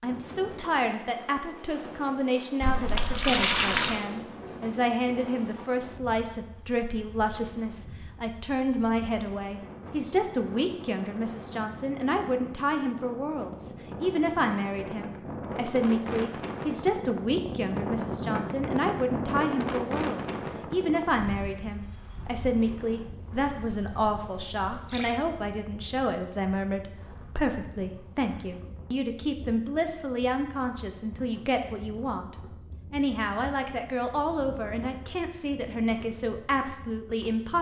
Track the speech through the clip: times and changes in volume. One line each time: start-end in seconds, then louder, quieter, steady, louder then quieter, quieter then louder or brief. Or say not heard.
0.0-37.5 steady.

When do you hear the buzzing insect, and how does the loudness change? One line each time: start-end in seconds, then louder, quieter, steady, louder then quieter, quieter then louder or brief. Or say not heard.
not heard.